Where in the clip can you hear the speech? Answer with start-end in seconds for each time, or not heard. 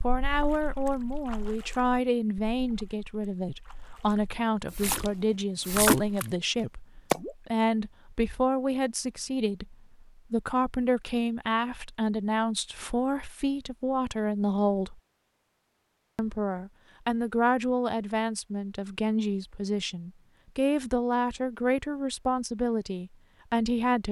0.0-15.0, 16.1-24.0.